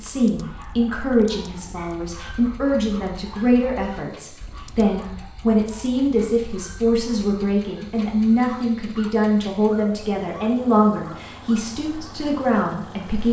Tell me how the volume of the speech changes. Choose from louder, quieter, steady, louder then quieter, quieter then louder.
steady.